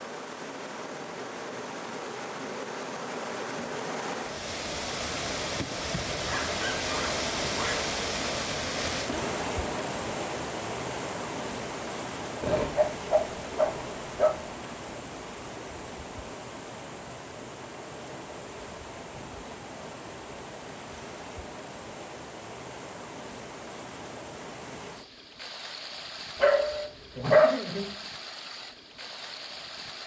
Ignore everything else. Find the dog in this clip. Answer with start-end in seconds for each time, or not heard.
6.2-7.9, 12.4-14.4, 26.4-27.9.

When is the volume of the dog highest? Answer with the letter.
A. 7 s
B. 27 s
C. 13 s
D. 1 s
B.